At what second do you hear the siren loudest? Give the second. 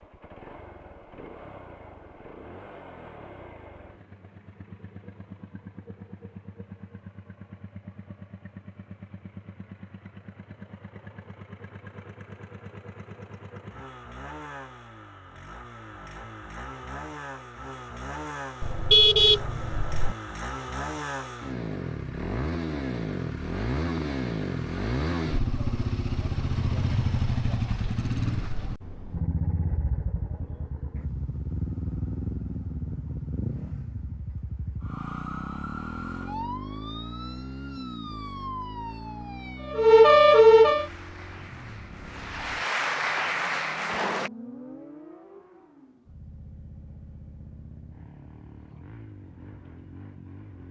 40 s.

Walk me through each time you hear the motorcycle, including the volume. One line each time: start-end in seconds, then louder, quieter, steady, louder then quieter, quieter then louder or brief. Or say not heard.
0.0-50.6 louder then quieter.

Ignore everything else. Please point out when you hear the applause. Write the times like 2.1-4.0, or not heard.
40.8-44.3.